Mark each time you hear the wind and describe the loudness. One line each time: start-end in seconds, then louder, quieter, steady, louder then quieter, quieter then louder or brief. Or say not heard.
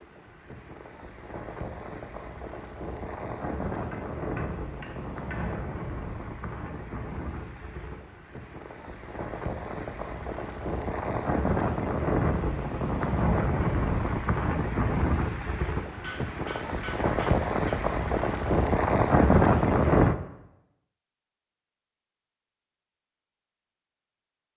0.0-20.1 louder.